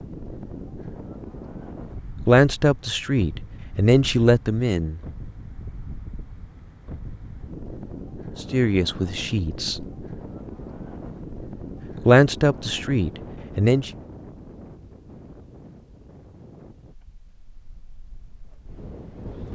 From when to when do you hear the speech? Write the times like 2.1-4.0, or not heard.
2.2-5.0, 8.4-9.8, 12.1-13.9.